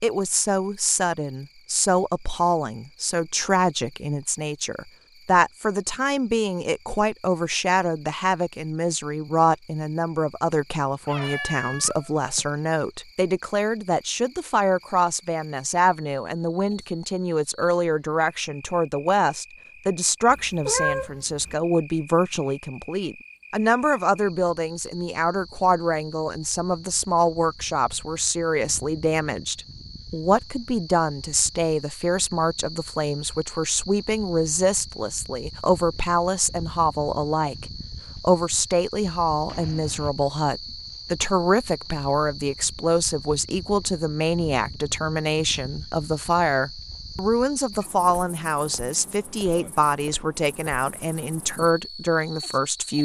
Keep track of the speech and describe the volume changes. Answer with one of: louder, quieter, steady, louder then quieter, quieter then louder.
steady.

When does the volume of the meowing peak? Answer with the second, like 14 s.
21 s.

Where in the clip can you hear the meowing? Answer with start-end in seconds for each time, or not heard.
10.9-12.4, 20.3-21.6, 39.5-40.1.